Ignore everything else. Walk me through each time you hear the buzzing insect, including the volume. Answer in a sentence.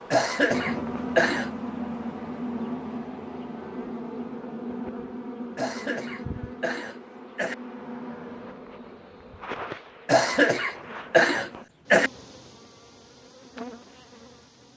The buzzing insect can be heard from 0.0 to 14.7 s, getting quieter.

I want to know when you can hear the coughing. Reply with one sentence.
The coughing can be heard from 0.1 to 1.5 s, from 5.5 to 7.5 s and from 10.1 to 12.1 s.